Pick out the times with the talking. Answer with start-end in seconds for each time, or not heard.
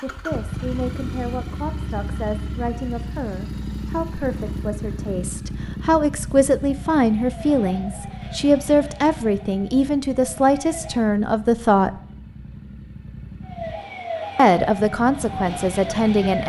0.0-11.9, 14.3-16.4.